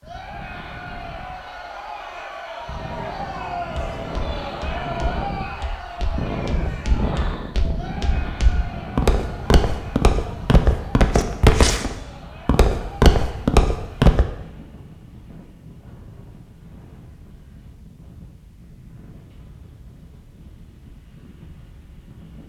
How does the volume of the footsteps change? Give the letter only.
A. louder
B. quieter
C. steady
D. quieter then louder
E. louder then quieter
A.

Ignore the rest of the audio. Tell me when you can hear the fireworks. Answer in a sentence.
The fireworks can't be heard in this clip.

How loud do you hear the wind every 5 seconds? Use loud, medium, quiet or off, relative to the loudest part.
medium, loud, medium, quiet, quiet.